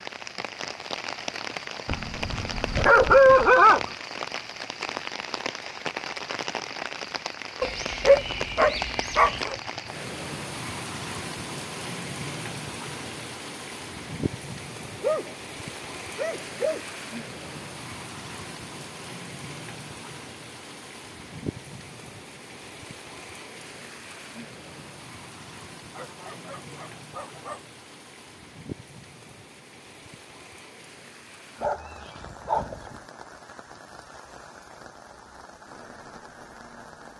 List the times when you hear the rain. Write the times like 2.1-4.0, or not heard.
0.0-37.1.